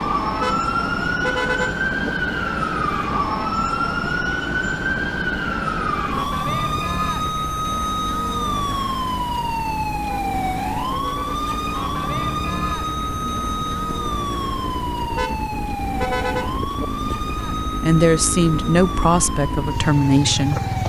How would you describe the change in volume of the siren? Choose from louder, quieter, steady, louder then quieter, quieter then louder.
quieter.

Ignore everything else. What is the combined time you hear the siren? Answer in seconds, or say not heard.
21 s.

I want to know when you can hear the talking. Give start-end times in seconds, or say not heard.
17.8-20.6.